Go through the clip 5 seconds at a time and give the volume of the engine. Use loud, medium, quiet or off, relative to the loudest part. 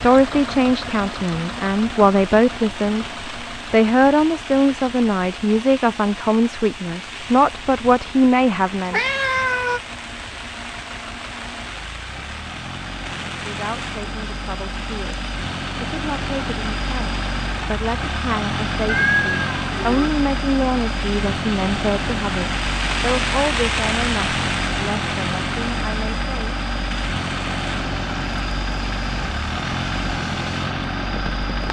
medium, quiet, medium, loud, loud, loud, loud.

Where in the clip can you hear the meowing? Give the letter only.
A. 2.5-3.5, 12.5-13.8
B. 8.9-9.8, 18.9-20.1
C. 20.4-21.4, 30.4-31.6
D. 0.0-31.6
B.